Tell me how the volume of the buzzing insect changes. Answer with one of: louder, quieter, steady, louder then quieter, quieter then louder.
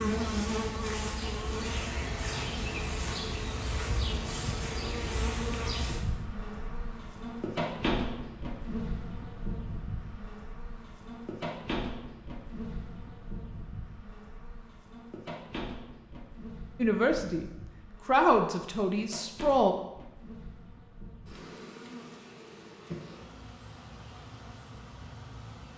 quieter.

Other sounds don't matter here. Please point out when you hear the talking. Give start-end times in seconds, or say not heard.
16.8-19.8.